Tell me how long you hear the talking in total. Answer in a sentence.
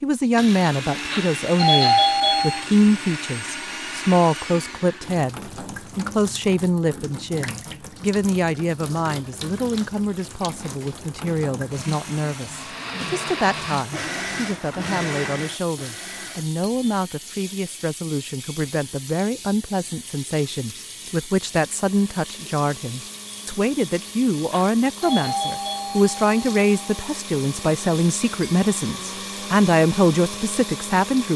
The talking can be heard for 31 seconds in total.